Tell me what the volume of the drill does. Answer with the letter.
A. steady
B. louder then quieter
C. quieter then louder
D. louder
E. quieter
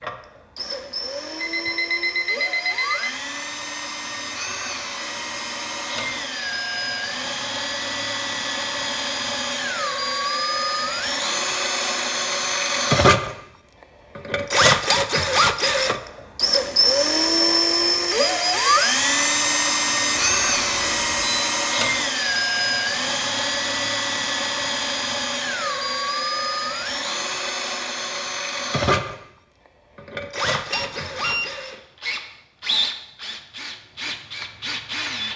B.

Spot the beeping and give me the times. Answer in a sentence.
The beeping can be heard from 1.4 to 3.1 s, from 20.1 to 21.5 s and from 30.7 to 31.5 s.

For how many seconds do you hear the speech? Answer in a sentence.
You can't hear the speech here.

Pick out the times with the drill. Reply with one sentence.
The drill can be heard from 0.0 to 35.3 s.